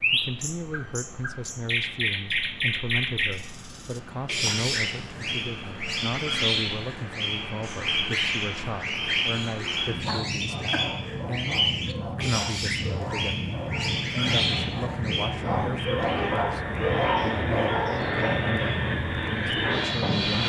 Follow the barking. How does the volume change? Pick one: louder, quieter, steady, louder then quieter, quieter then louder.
louder.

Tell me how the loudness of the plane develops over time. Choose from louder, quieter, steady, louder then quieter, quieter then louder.
louder.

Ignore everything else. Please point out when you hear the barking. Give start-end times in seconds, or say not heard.
10.1-18.3.